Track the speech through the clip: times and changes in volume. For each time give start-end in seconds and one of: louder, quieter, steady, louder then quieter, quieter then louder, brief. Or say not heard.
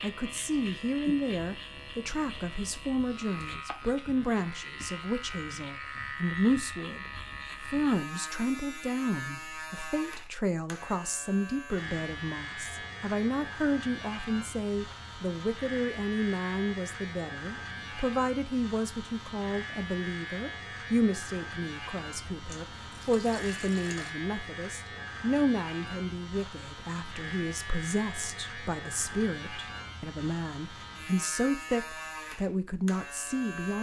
0.0-33.7 steady.